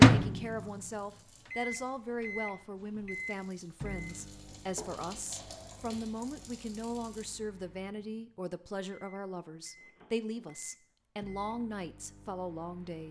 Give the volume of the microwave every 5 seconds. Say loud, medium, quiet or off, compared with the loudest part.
loud, quiet, quiet.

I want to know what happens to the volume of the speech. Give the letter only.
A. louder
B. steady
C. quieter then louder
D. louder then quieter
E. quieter
B.